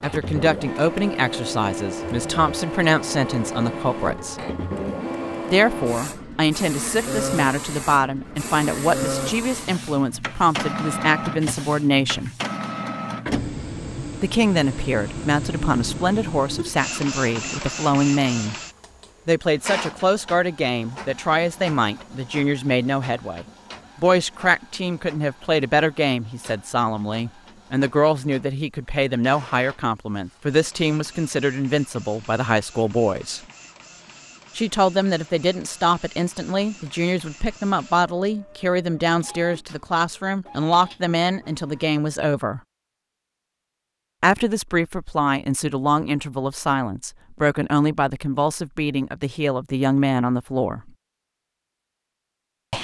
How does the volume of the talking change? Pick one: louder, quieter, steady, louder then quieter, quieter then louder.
steady.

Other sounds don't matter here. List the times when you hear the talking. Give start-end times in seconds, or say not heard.
0.0-4.3, 5.5-12.3, 14.2-18.6, 19.2-33.4, 34.5-42.6, 44.2-50.9.